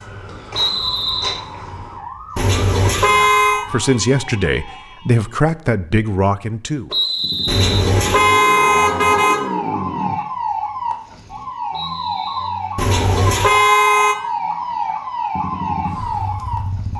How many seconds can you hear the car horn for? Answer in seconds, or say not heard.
5 s.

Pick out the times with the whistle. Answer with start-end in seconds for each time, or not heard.
0.5-1.4, 6.9-7.9, 11.7-12.6.